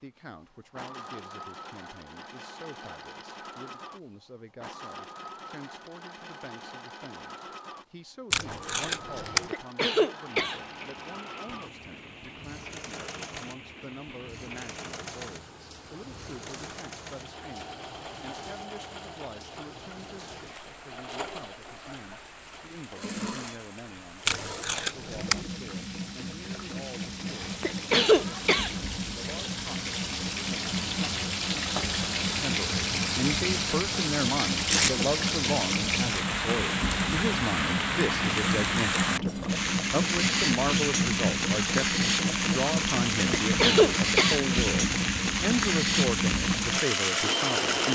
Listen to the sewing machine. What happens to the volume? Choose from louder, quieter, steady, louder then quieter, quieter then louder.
louder.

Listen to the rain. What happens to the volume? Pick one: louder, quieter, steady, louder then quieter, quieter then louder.
louder.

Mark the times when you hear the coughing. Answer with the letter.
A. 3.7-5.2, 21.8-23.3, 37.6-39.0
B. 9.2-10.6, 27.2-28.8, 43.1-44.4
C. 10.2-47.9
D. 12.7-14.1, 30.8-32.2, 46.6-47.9
B.